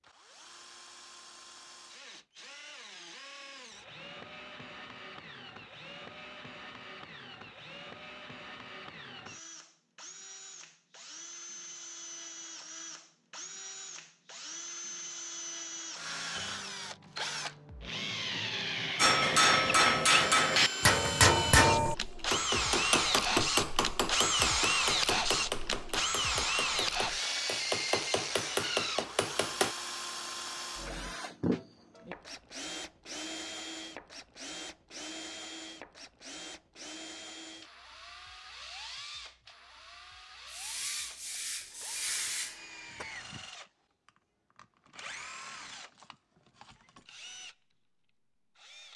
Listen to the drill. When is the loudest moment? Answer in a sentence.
The loudest moment of the drill is at 25 seconds.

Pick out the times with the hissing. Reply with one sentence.
You can hear the hissing from 40.5 to 43.5 s.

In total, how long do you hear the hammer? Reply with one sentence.
You can hear the hammer for 11 seconds altogether.